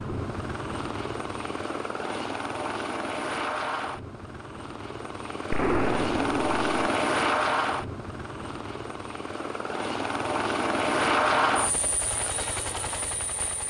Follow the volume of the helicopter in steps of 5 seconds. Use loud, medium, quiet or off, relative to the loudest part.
medium, loud, loud.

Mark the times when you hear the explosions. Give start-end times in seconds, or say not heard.
5.5-6.7.